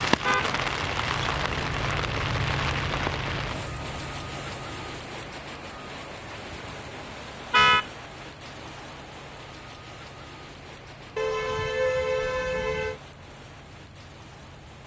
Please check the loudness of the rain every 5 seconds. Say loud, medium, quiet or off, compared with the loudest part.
loud, medium, quiet.